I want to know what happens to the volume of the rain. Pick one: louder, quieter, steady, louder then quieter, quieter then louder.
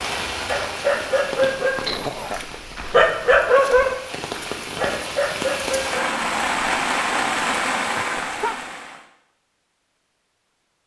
quieter then louder.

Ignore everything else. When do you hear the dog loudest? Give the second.
3 s.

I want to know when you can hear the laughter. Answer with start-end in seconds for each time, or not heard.
1.9-2.4, 8.0-8.6.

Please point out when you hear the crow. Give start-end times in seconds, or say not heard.
not heard.